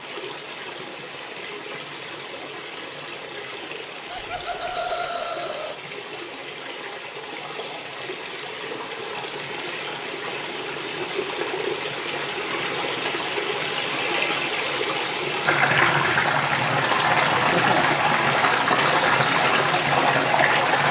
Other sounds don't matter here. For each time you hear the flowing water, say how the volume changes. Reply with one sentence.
You can hear the flowing water from 0.0 to 20.8 s, getting louder.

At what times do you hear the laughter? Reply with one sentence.
You can hear the laughter from 4.1 to 5.8 s and from 17.5 to 17.9 s.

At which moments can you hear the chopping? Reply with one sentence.
You can't hear the chopping here.